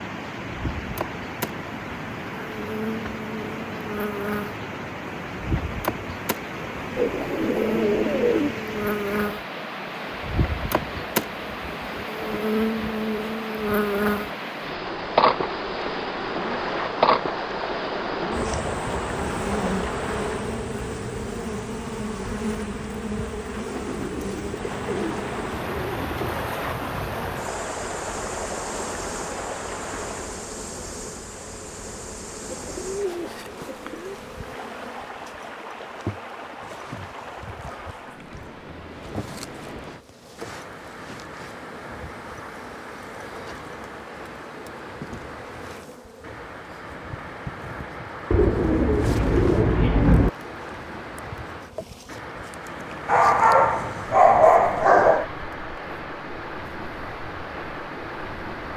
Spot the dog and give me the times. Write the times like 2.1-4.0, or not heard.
53.0-55.2.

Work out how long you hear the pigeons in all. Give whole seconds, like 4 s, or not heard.
8 s.